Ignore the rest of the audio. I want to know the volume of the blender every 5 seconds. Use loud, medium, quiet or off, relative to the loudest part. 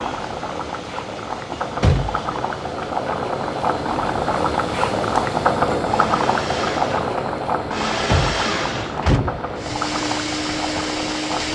quiet, loud, loud.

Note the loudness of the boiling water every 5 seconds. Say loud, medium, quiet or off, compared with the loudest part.
loud, loud, medium.